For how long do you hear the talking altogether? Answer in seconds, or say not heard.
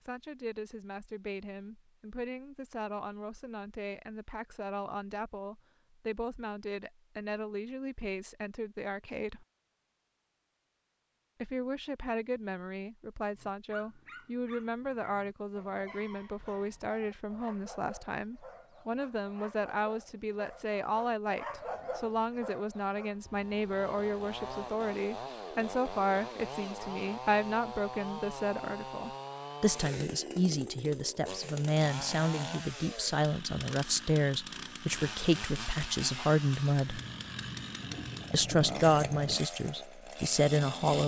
38 s.